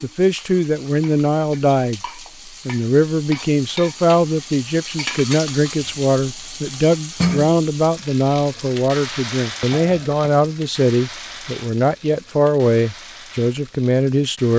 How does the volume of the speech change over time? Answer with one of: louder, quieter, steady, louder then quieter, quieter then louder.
steady.